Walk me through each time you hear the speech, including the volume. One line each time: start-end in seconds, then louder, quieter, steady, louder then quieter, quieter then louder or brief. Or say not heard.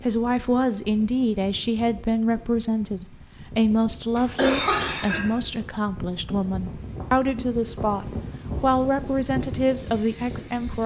0.0-10.8 steady.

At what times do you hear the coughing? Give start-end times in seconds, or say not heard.
4.2-5.2.